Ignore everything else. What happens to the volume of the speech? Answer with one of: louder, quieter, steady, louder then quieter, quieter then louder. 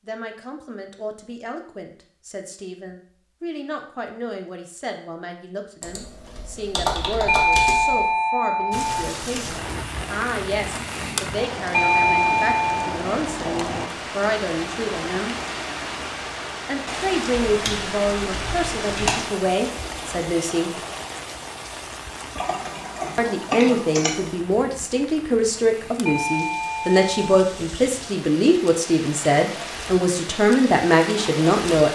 louder.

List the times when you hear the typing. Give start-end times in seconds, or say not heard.
5.8-8.2, 17.4-19.2, 22.4-24.3.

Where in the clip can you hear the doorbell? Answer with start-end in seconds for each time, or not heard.
7.2-9.0, 11.7-12.9, 26.1-27.4.